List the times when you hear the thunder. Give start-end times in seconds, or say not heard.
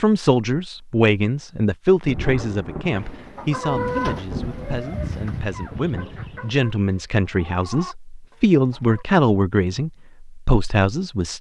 2.0-6.5.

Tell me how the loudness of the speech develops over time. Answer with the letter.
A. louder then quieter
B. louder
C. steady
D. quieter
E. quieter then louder
E.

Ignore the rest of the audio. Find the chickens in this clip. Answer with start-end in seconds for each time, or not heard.
2.9-9.1.